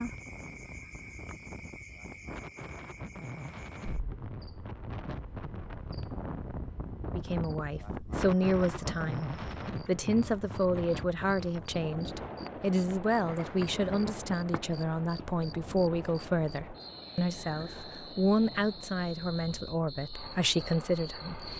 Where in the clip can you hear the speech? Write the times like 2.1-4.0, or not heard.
7.0-21.5.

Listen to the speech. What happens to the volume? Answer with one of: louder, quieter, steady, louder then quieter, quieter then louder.
steady.